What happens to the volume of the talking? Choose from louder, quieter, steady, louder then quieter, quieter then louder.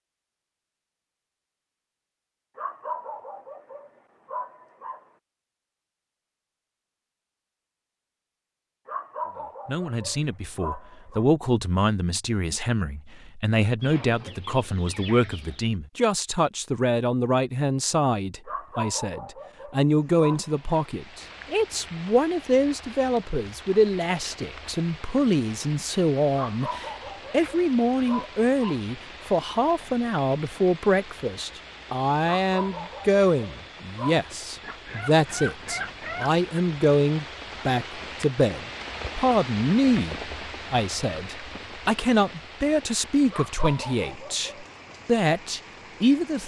steady.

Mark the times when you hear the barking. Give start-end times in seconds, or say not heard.
2.5-5.0, 8.8-11.2, 18.4-20.9, 26.4-29.2, 32.4-34.2, 43.3-44.8.